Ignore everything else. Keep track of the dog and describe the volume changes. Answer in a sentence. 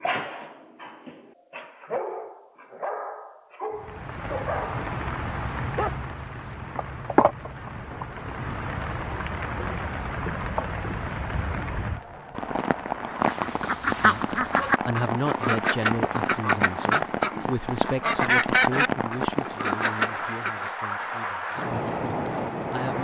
The volume of the dog goes up.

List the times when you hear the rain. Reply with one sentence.
The rain can be heard from 3.8 to 22.9 s.